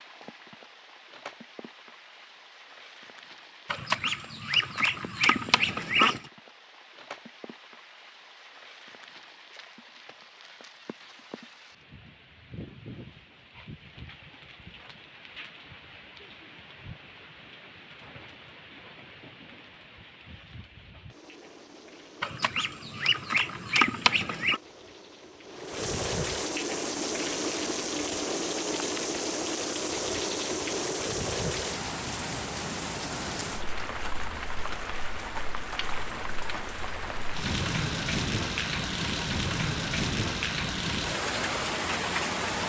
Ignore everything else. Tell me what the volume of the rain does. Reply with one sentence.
The loudness of the rain goes up.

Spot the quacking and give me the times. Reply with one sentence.
You can hear the quacking from 3.7 to 6.2 s and from 22.2 to 24.6 s.